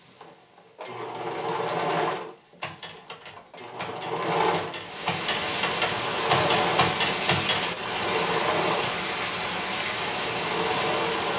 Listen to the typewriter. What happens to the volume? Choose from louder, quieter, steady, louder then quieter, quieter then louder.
louder.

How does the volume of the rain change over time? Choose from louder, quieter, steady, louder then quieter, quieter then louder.
steady.